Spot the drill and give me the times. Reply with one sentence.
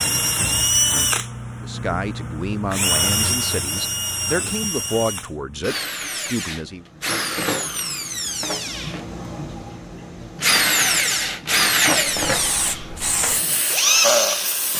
The drill can be heard from 0.0 to 14.7 s.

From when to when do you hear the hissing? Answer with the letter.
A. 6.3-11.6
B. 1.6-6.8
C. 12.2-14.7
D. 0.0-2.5
C.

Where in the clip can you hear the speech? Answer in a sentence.
You can hear the speech from 1.6 to 6.8 s.